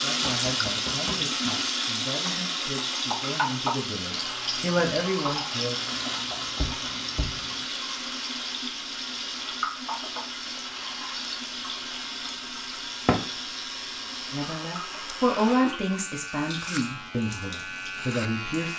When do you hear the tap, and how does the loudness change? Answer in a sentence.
You can hear the tap from 0.0 to 18.7 s, getting quieter.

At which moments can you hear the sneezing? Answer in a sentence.
The sneezing can't be heard in this clip.